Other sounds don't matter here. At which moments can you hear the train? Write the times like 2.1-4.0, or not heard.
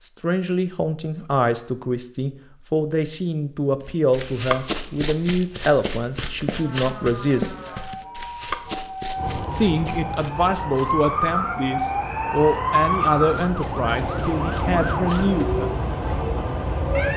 9.2-17.1.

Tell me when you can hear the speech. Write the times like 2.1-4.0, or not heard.
0.0-7.5, 9.5-15.7.